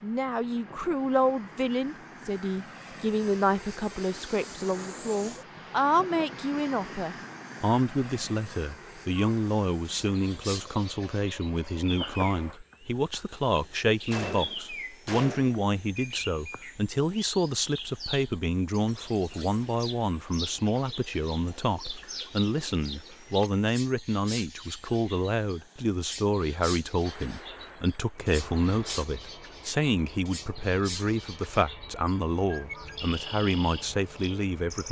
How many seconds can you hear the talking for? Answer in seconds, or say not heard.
35 s.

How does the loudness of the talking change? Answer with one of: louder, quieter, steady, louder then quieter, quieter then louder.
steady.